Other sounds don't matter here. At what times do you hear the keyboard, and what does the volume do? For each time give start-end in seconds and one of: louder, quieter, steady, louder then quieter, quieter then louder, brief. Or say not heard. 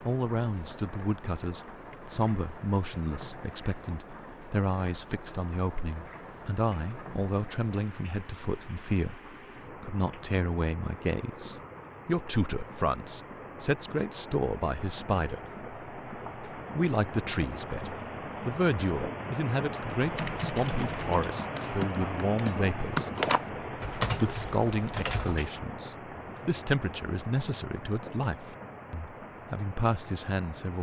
19.9-25.6 louder then quieter.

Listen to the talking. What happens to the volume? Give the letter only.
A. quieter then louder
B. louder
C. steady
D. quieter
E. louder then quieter
C.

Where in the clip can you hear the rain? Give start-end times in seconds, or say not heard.
0.0-30.7.